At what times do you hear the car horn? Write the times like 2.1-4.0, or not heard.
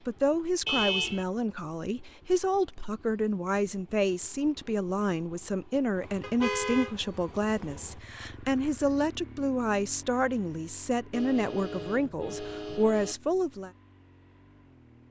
0.7-1.2, 6.2-7.4, 11.1-13.2.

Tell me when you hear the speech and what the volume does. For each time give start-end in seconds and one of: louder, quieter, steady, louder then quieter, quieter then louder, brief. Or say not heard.
0.1-13.7 steady.